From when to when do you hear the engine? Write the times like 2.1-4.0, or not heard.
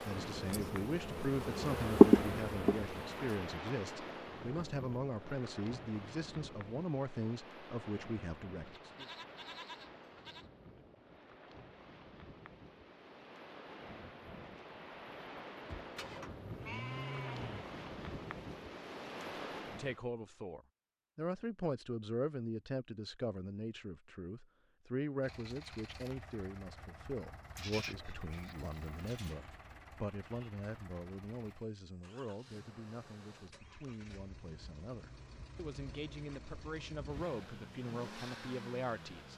25.2-39.3.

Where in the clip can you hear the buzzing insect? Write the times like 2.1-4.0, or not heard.
0.0-3.4.